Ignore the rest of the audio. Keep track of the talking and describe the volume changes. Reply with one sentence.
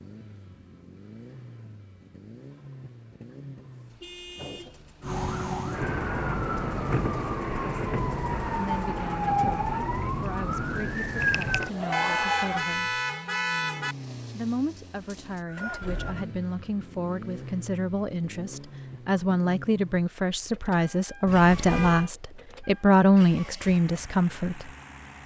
The loudness of the talking goes up.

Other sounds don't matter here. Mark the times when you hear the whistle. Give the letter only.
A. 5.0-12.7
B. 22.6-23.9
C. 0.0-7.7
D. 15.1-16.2
D.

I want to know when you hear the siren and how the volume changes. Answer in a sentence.
You can hear the siren from 5.0 to 12.7 s, at a steady volume.